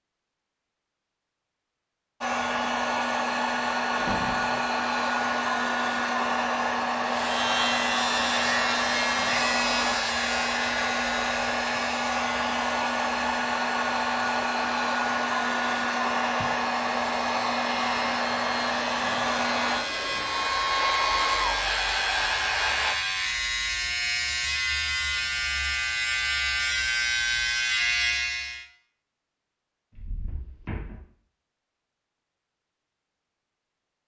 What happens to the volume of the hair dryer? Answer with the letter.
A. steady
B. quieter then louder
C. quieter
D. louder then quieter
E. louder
A.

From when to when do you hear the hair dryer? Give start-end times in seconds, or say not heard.
2.2-22.9.